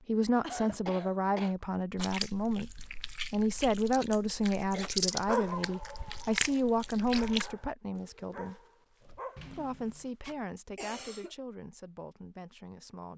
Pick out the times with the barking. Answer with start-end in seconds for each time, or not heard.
4.8-10.3.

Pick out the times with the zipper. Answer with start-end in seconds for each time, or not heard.
not heard.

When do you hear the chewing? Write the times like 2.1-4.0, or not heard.
1.9-7.5.